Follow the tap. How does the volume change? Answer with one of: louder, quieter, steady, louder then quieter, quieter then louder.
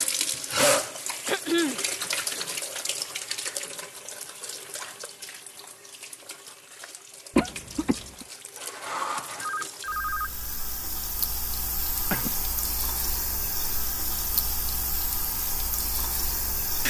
quieter then louder.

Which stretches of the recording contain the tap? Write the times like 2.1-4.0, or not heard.
0.0-16.8.